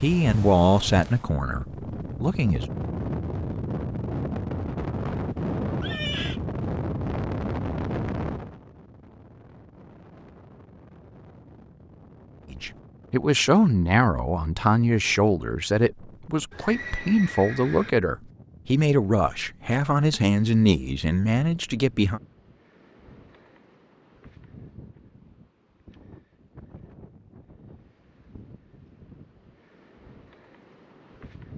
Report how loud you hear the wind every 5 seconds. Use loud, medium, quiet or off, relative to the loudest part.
loud, loud, quiet, quiet, quiet, quiet, quiet.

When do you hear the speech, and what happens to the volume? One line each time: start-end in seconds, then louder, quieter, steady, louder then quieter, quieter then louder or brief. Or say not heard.
0.0-2.6 brief
12.5-22.2 steady.